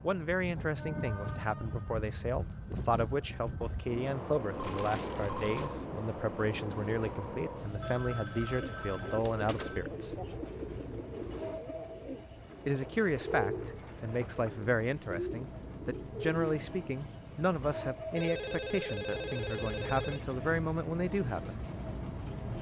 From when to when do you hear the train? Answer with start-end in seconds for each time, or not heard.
0.0-22.5.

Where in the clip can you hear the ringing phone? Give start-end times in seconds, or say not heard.
4.5-5.8, 7.8-9.8, 18.1-20.4.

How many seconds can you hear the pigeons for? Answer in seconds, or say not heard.
8 s.